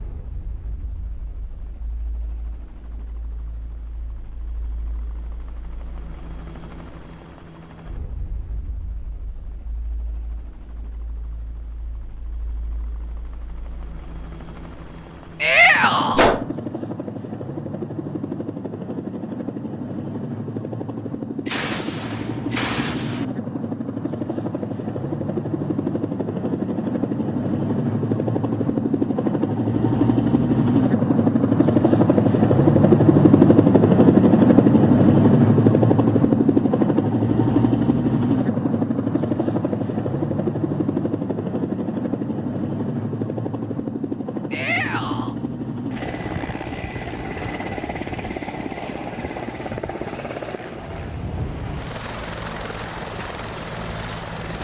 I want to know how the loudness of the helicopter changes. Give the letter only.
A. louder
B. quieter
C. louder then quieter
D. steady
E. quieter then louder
C.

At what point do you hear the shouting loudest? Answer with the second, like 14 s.
16 s.